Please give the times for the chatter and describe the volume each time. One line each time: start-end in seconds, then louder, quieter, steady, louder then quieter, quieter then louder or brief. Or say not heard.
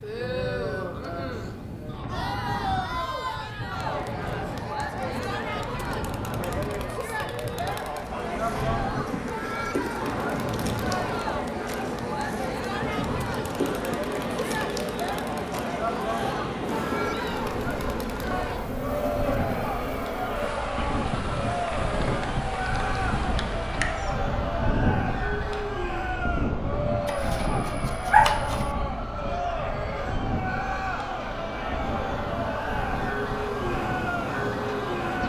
0.0-35.2 steady.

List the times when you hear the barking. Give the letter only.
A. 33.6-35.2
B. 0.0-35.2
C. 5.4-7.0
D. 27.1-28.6
D.